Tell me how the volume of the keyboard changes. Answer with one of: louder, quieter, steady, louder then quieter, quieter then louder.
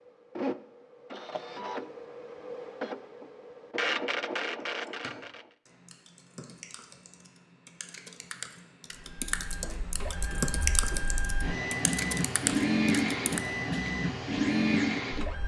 louder.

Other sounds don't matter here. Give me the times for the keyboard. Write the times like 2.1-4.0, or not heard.
4.6-13.4.